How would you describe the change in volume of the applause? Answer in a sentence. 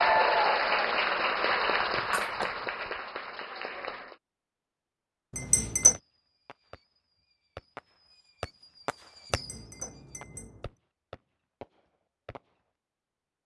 The volume of the applause goes down.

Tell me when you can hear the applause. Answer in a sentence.
You can hear the applause from 0.0 to 4.2 s.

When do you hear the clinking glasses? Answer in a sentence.
The clinking glasses can be heard from 1.9 to 2.7 s, from 5.3 to 6.0 s and from 9.3 to 10.5 s.